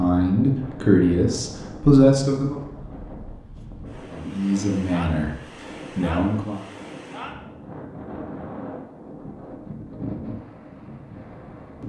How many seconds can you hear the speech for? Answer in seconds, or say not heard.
5 s.